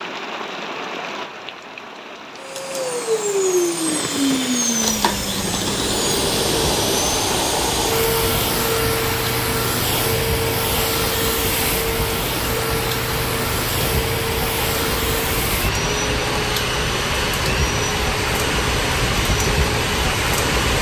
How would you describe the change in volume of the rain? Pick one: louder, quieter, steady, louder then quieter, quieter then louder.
louder.